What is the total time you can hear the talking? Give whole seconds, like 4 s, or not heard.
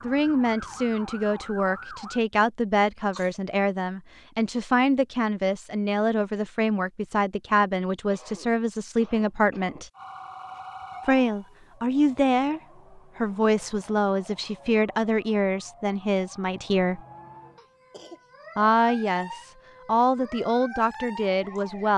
19 s.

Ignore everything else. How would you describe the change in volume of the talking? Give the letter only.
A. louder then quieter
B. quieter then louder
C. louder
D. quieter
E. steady
E.